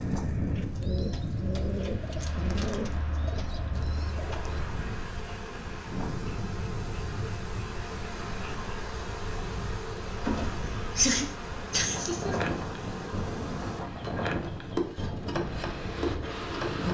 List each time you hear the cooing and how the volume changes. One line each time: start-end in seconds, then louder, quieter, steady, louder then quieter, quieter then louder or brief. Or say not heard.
0.0-4.8 quieter.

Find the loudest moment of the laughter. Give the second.
11 s.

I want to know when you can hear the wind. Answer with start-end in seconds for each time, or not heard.
0.0-16.8.